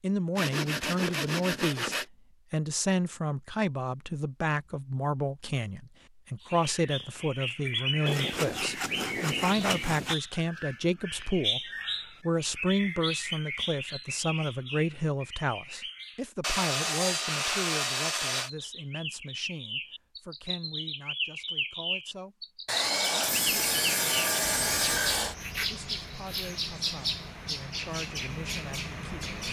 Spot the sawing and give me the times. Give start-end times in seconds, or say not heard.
0.3-2.0, 8.1-10.2, 16.4-18.5, 22.6-25.4.